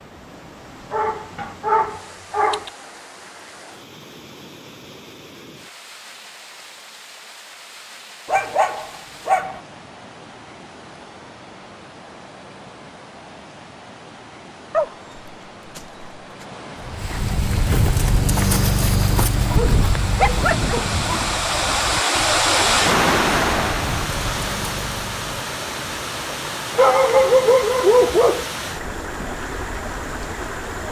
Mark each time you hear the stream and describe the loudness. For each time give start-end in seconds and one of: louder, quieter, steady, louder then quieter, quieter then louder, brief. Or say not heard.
0.0-30.8 louder then quieter.